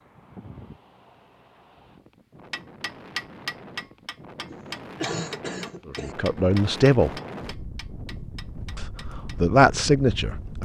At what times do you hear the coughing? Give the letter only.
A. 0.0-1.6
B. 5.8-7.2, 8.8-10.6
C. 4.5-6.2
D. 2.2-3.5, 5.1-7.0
C.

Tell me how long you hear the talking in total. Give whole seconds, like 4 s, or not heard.
3 s.